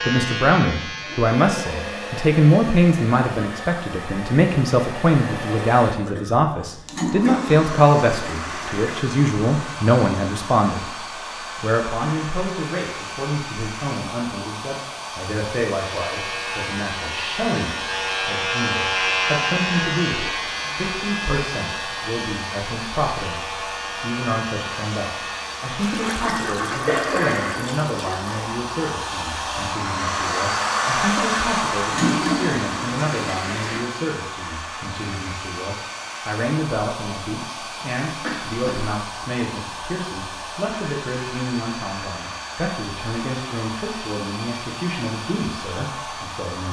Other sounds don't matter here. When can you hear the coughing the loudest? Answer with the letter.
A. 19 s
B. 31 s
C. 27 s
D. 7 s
C.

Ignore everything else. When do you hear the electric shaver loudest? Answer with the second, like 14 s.
19 s.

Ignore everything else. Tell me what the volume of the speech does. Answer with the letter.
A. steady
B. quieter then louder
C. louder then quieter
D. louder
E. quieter
E.